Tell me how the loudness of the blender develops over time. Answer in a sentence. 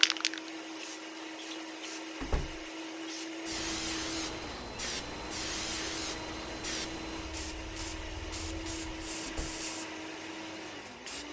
The volume of the blender stays about the same.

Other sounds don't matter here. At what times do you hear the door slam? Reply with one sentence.
You can hear the door slam from 2.2 to 2.6 s and from 9.2 to 9.7 s.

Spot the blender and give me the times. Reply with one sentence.
The blender can be heard from 0.0 to 11.2 s.